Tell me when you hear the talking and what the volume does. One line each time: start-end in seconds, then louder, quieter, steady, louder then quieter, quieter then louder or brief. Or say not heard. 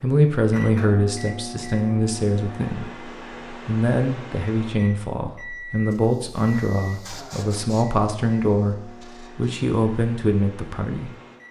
0.0-11.1 steady.